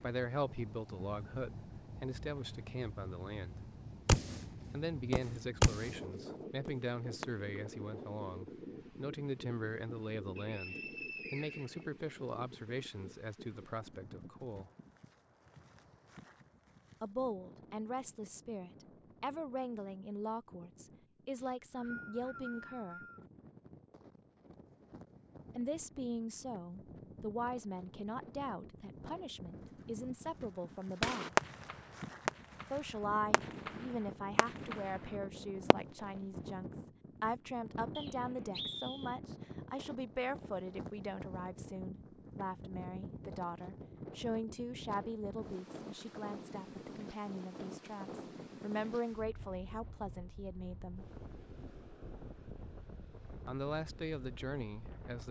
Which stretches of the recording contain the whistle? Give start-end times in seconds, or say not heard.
10.3-12.3, 21.4-23.2, 38.0-39.2.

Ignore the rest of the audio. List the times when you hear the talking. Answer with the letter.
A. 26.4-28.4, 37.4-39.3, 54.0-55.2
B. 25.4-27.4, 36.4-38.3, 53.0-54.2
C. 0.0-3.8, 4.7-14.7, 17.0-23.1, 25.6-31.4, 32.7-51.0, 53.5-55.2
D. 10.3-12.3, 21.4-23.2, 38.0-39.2
C.